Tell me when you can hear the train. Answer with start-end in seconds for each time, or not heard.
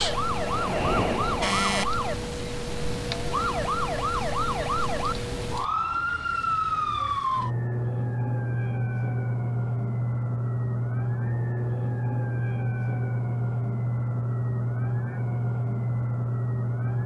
0.2-1.6.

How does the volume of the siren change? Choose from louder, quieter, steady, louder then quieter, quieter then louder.
steady.